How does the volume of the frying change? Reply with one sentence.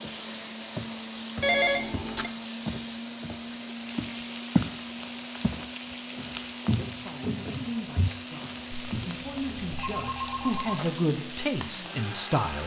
The volume of the frying stays about the same.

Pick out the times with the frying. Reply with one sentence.
You can hear the frying from 0.0 to 12.6 s.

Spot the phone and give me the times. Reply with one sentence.
You can hear the phone from 1.4 to 2.3 s and from 8.7 to 10.9 s.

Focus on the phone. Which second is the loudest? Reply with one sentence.
The volume of the phone peaks at 2 seconds.